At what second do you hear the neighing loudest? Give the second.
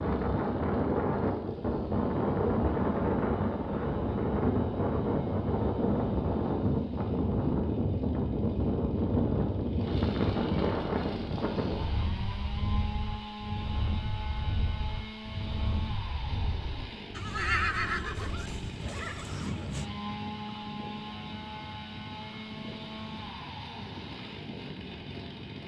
18 s.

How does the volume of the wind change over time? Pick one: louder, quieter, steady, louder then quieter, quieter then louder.
quieter.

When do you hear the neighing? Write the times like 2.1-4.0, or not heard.
17.1-19.9.